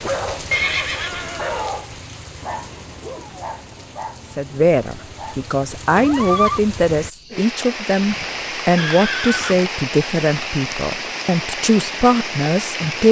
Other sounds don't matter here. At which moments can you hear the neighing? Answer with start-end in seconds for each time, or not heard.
0.5-1.8, 6.0-6.6, 8.8-9.7.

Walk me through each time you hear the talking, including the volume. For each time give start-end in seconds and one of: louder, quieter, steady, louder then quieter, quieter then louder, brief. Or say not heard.
4.3-13.0 steady.